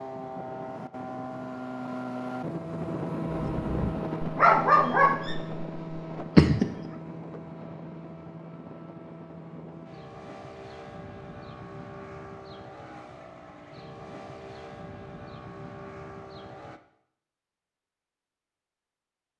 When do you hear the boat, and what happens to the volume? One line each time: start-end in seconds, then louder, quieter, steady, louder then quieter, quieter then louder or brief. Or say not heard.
0.0-16.8 quieter.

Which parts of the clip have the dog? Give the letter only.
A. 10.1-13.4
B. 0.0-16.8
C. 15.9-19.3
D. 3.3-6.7
D.